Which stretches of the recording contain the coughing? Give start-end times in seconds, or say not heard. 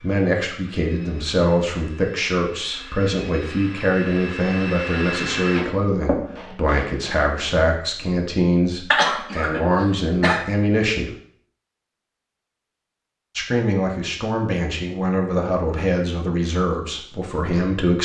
8.9-10.4.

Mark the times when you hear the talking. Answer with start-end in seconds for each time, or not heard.
0.0-11.1, 13.3-18.0.